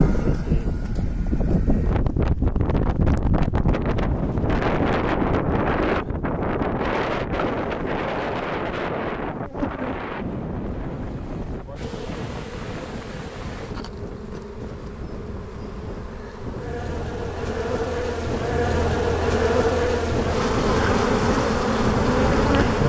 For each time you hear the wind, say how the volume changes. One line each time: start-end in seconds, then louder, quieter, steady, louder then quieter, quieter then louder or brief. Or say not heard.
0.0-22.8 quieter then louder.